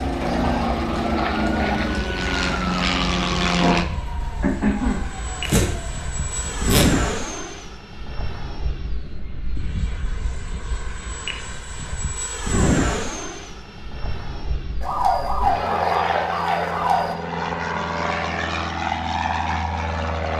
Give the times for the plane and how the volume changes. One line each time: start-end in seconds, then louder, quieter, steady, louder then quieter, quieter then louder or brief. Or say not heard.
0.0-20.3 quieter then louder.